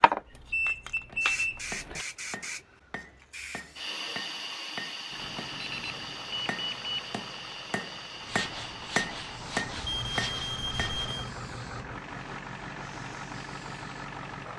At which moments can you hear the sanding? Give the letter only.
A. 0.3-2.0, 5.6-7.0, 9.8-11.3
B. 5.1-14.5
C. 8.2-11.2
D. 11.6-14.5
C.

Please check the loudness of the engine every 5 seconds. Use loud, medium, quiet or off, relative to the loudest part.
off, medium, loud.